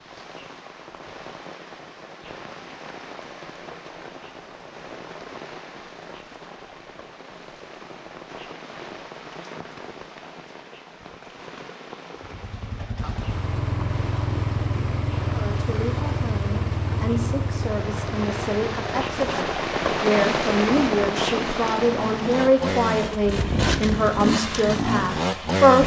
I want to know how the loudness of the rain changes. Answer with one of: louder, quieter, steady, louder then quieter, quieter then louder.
louder.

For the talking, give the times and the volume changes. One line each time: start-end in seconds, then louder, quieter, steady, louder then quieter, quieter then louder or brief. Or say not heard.
15.3-25.8 louder.